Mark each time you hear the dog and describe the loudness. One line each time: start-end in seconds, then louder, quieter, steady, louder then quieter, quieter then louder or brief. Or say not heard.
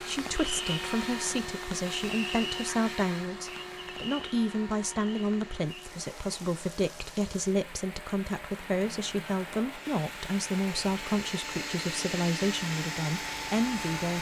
not heard.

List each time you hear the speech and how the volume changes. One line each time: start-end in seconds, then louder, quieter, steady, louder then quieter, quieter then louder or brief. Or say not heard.
0.1-14.1 steady.